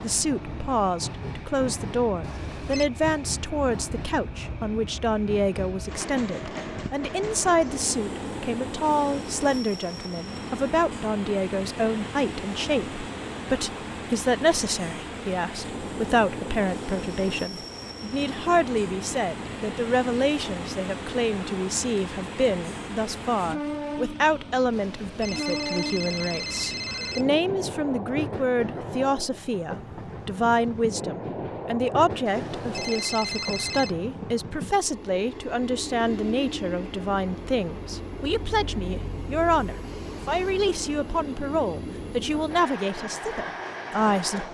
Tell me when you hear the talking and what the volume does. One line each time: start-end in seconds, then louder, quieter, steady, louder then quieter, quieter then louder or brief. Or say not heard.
0.0-44.5 steady.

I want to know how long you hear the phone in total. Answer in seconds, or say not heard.
5 s.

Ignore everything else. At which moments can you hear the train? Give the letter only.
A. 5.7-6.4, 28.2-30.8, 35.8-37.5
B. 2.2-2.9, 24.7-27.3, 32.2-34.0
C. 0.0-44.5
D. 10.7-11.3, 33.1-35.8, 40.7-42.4
C.